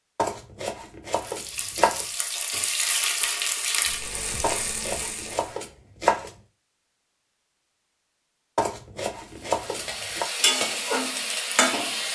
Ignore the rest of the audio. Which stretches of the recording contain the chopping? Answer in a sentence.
The chopping can be heard from 0.1 to 2.0 s, from 4.4 to 6.3 s and from 8.6 to 10.2 s.